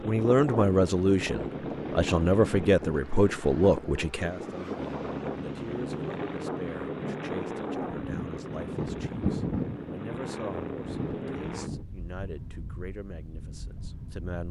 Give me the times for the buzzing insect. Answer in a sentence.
The buzzing insect can't be heard in this clip.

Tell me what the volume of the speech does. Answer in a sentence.
The volume of the speech goes down.